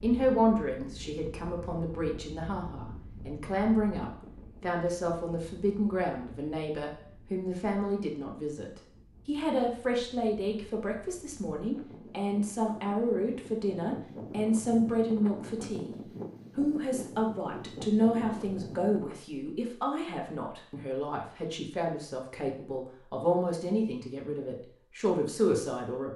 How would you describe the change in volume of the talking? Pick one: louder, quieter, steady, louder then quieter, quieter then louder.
steady.